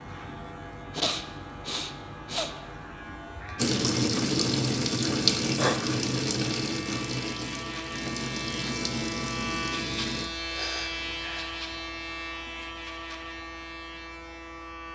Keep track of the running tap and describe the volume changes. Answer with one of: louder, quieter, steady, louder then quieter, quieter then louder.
quieter.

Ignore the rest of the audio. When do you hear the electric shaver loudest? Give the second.
10 s.